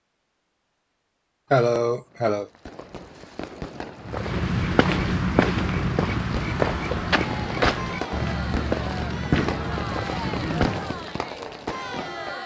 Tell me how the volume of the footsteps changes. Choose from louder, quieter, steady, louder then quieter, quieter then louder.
quieter.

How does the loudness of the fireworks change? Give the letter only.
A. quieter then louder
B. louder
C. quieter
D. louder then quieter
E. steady
B.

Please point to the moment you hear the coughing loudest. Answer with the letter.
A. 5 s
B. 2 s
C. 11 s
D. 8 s
B.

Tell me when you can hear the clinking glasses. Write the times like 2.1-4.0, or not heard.
not heard.